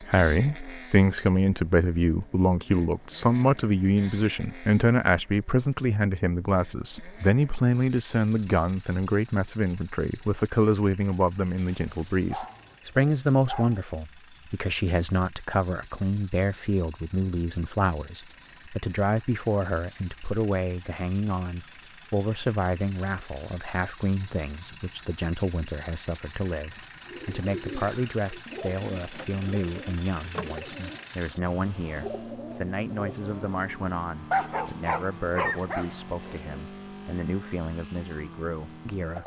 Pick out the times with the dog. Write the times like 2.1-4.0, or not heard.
11.6-13.8, 34.3-36.6.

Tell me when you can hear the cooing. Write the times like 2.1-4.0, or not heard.
27.1-33.6.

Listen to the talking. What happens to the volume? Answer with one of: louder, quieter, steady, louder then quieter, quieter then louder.
quieter.